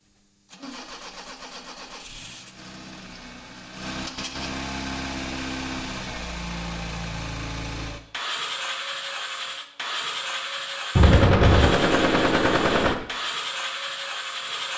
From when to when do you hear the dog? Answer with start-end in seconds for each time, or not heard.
not heard.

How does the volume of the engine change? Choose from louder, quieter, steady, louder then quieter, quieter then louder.
louder.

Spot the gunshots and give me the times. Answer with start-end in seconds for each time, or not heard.
10.9-12.9.